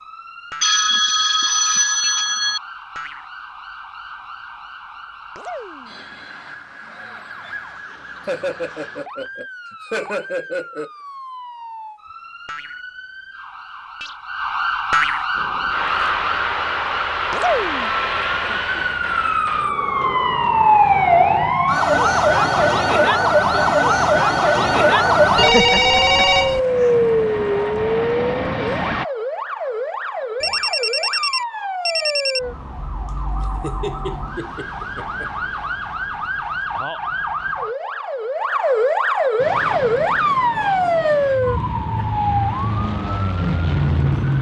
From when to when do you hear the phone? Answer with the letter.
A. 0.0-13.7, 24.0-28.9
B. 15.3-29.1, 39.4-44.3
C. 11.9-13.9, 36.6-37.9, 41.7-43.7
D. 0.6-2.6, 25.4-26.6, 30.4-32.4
D.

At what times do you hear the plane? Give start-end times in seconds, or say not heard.
15.3-29.1, 39.4-44.3.